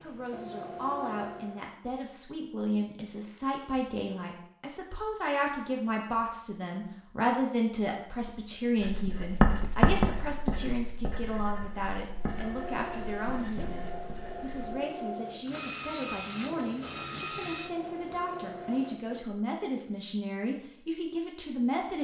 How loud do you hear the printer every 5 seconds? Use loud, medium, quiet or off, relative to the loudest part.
loud, off, loud, loud, off.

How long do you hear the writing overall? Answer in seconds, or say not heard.
6 s.